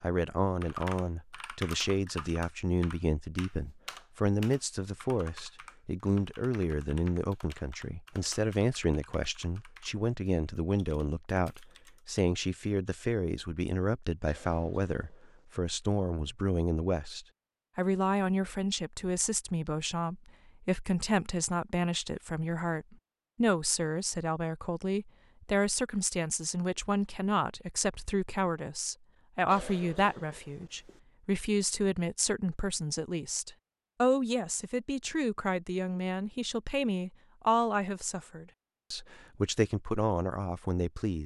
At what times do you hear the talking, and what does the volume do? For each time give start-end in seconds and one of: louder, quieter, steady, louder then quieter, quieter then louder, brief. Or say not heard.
0.0-41.2 steady.